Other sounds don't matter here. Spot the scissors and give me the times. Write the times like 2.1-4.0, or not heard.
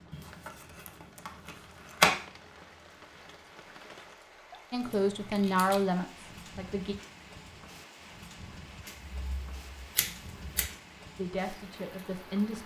0.1-2.1, 4.8-5.9, 8.8-10.7.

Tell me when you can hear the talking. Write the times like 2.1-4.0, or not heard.
4.7-7.0, 11.2-12.6.